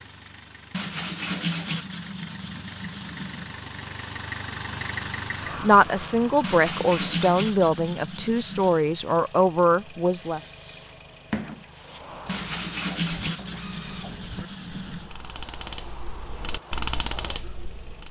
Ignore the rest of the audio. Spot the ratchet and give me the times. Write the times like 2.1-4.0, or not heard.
11.8-18.0.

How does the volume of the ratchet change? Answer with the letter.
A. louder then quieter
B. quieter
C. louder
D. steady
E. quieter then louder
C.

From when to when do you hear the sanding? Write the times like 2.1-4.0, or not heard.
0.7-3.5, 6.4-8.8, 12.2-15.1.